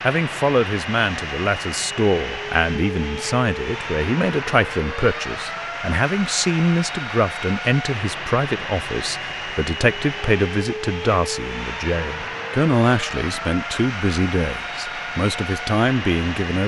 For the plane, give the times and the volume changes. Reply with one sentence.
The plane can be heard from 0.0 to 16.6 s, at a steady volume.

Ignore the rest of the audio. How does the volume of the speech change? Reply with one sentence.
The loudness of the speech stays about the same.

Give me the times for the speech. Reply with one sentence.
You can hear the speech from 0.0 to 16.6 s.